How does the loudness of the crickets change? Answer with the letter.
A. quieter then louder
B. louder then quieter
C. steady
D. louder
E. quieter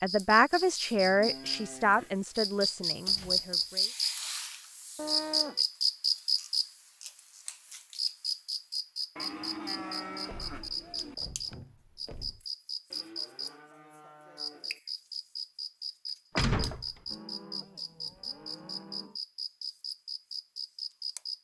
E.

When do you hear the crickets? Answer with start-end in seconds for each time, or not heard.
0.0-21.3.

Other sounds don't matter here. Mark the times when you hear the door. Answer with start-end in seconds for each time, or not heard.
2.3-3.8, 10.2-12.4, 16.4-16.9.